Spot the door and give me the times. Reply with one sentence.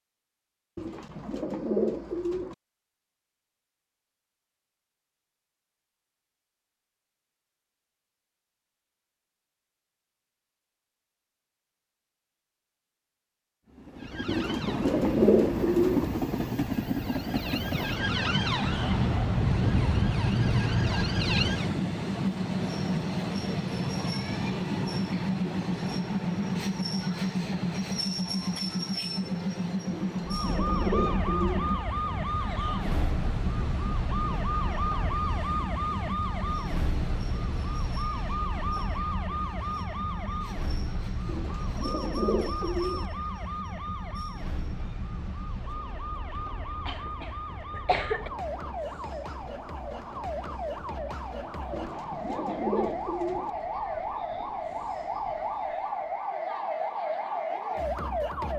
The door can't be heard in this clip.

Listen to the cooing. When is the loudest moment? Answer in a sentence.
The volume of the cooing peaks at 15 seconds.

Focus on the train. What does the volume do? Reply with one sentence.
The volume of the train goes down.